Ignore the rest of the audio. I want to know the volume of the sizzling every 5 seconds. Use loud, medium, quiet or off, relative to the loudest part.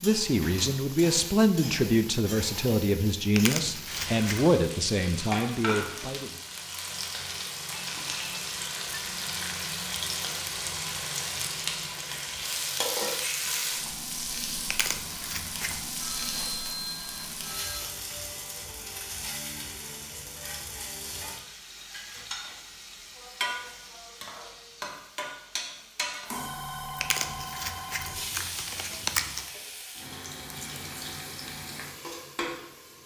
medium, loud, loud, medium, medium, medium, medium.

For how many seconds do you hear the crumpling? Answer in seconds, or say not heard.
5 s.